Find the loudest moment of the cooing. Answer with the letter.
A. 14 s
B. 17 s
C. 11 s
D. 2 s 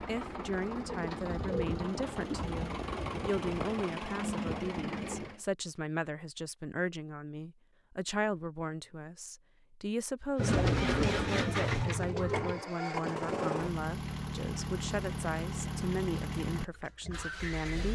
C.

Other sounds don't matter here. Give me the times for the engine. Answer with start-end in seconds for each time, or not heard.
0.0-5.4, 10.3-17.9.